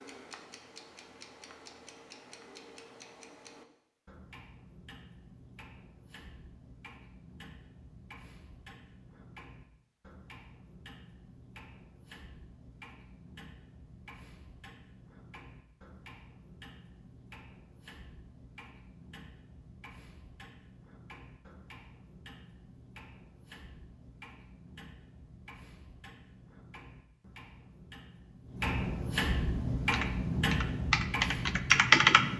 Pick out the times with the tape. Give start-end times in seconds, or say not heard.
not heard.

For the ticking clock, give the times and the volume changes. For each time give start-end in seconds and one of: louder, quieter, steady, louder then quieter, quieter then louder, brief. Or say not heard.
0.0-32.3 louder.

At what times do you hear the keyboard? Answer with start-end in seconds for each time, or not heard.
29.8-32.3.